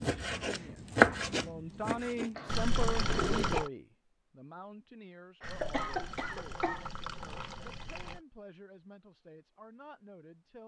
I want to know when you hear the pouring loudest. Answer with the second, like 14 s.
3 s.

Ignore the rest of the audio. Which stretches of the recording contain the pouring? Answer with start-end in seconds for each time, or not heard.
2.5-3.7, 5.4-8.2.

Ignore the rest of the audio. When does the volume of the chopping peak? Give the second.
1 s.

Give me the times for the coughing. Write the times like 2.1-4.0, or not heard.
2.4-3.7, 5.4-6.8.